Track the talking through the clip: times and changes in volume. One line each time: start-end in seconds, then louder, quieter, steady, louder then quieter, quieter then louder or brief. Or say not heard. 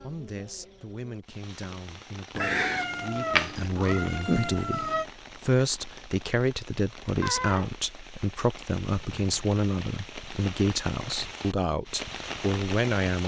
0.0-13.2 louder.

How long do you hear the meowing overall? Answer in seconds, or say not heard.
3 s.